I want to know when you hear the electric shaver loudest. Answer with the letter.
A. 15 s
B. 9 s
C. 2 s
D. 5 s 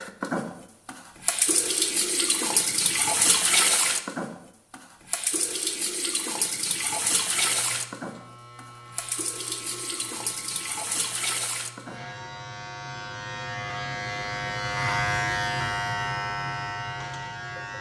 A.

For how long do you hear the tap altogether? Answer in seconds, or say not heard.
12 s.